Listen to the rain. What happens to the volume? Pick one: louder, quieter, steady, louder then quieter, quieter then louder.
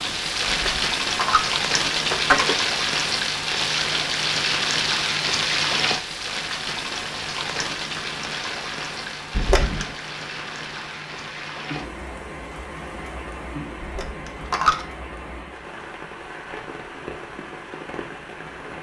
quieter.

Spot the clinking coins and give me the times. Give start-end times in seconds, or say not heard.
0.5-2.5, 9.3-9.9, 13.8-14.8.